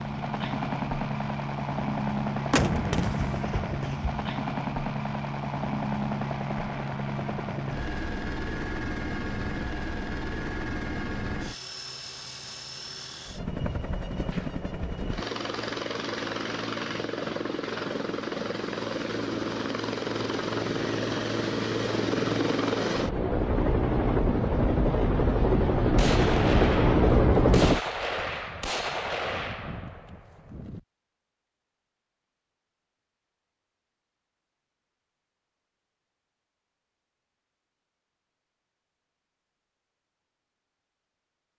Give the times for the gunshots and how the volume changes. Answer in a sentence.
The gunshots can be heard briefly from 2.5 to 4.2 s; and from 25.9 to 30.8 s, getting quieter.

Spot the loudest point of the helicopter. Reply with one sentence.
The volume of the helicopter peaks at 27 seconds.